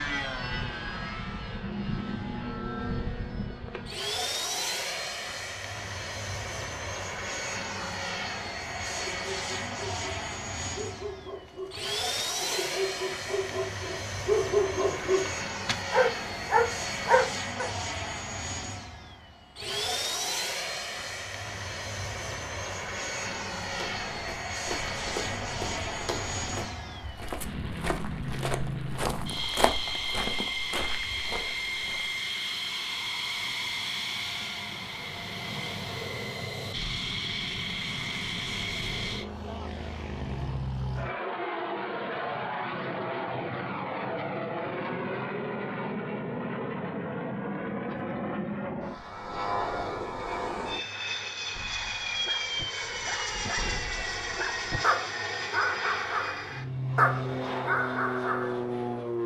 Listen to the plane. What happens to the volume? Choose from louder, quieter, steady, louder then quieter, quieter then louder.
steady.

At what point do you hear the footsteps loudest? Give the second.
30 s.